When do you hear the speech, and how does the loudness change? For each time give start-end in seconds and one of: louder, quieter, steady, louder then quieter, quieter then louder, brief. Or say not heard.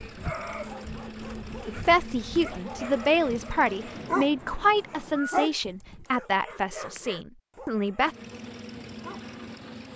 1.6-8.1 quieter.